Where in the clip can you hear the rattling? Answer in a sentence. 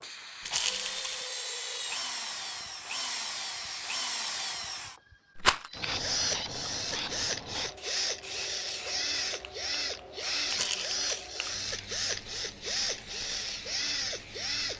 The rattling can be heard from 0.4 to 1.2 s, from 5.3 to 5.8 s and from 10.4 to 11.2 s.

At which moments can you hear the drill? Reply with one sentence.
The drill can be heard from 0.0 to 14.7 s.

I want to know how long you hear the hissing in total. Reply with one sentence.
You can hear the hissing for 15 seconds altogether.